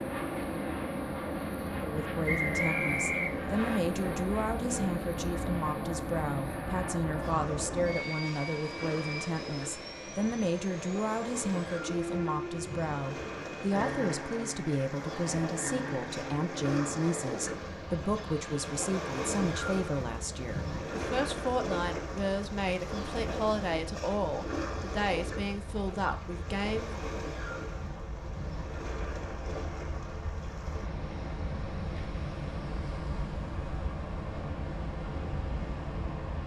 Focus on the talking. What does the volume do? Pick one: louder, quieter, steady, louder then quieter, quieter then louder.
steady.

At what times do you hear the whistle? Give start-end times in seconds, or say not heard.
2.2-3.8.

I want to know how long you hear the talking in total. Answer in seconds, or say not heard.
25 s.